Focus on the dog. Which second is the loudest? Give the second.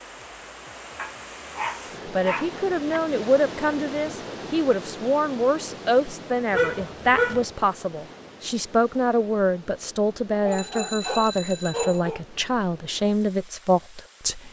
7 s.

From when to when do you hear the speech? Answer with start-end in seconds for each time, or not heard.
2.0-14.4.